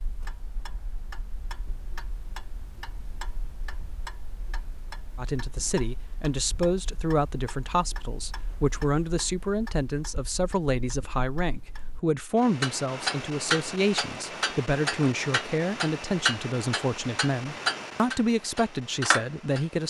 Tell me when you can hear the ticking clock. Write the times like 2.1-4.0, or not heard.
0.0-19.8.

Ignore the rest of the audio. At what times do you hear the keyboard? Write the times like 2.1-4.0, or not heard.
not heard.